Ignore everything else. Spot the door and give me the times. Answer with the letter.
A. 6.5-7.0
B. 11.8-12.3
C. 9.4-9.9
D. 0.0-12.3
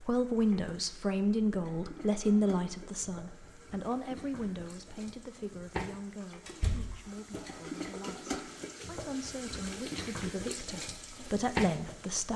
A.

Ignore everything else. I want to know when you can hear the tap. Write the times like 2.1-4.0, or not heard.
0.0-12.3.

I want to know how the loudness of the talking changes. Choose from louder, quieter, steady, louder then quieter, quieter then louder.
quieter then louder.